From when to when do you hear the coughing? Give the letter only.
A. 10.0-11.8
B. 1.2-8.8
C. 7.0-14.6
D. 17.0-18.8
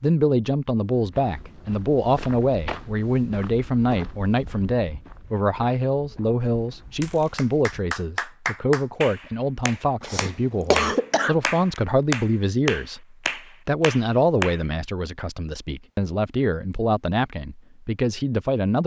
A.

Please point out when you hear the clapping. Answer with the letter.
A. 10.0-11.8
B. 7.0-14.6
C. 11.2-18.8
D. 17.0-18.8
B.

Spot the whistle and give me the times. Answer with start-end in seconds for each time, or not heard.
not heard.